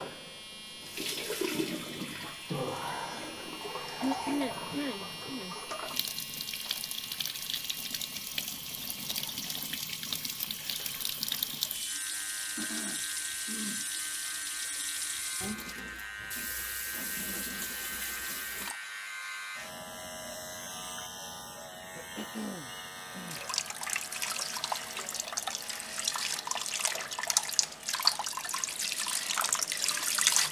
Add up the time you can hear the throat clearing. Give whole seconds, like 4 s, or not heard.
4 s.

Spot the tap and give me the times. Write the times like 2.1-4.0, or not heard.
0.0-18.8, 23.1-30.4.